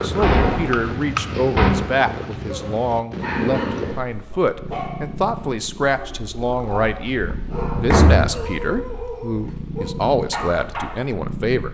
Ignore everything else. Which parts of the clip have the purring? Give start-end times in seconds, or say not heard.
0.0-11.6.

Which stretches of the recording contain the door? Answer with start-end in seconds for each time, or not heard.
0.2-1.7, 7.3-8.3.